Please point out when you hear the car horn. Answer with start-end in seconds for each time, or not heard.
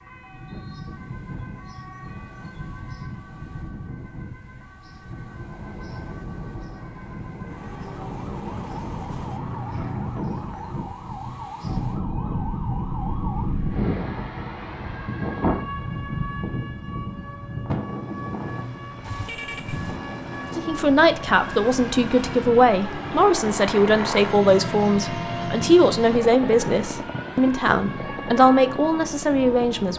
19.0-20.0.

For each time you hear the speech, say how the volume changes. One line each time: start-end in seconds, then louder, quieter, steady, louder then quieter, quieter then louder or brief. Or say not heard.
20.6-29.9 steady.